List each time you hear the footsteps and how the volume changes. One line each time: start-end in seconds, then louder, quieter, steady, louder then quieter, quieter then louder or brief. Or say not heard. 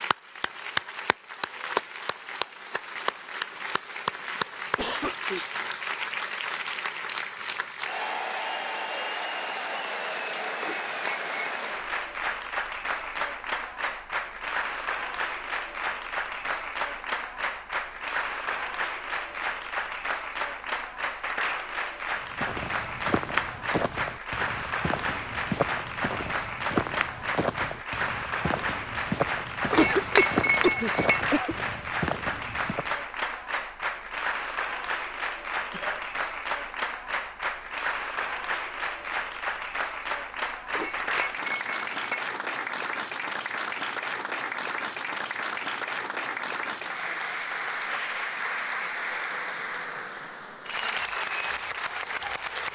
22.1-33.0 steady.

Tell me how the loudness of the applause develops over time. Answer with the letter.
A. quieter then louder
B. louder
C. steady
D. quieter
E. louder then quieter
C.